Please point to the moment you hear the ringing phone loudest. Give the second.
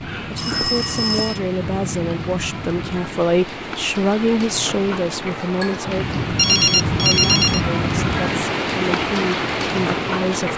7 s.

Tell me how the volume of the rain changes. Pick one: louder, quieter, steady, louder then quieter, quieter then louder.
louder.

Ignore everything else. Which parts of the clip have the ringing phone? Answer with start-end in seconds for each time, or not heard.
0.3-1.4, 6.3-7.6.